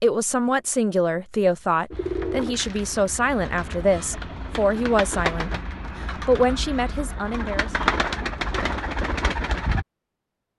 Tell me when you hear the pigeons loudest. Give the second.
8 s.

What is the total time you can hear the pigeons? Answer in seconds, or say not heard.
8 s.